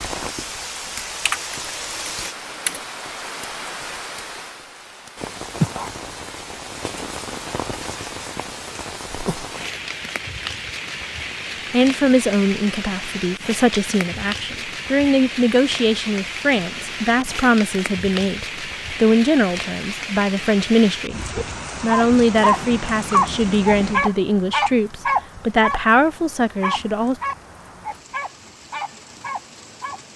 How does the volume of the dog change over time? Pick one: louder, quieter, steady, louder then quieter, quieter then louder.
quieter.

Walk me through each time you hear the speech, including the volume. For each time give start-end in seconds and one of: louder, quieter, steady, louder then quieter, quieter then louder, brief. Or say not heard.
11.7-21.2 steady
21.8-27.1 steady.